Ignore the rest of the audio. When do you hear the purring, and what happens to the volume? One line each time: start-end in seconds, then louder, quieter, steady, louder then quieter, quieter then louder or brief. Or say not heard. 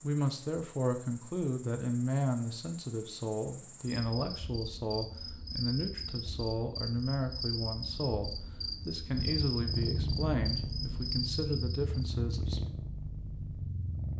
9.1-14.1 quieter.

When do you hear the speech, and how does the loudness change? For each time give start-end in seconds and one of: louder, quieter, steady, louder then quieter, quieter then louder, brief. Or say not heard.
0.0-12.7 steady.